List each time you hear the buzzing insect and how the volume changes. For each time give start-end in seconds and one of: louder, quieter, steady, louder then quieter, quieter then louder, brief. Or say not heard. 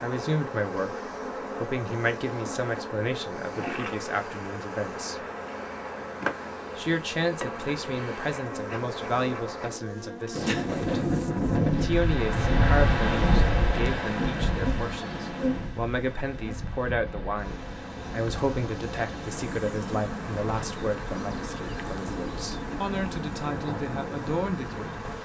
0.0-25.2 steady.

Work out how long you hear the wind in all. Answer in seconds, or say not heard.
15 s.